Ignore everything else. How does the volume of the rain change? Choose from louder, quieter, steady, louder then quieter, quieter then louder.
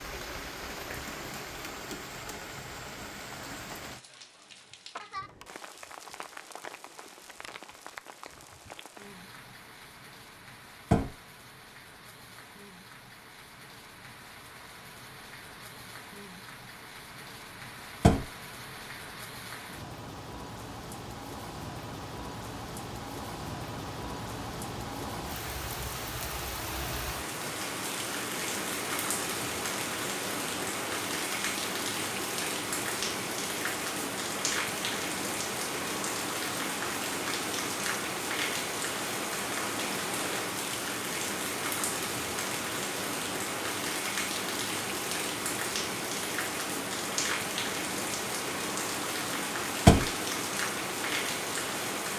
louder.